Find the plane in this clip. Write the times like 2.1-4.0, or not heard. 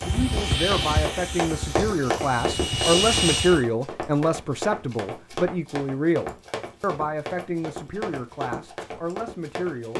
0.0-3.6.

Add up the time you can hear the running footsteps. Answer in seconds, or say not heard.
10 s.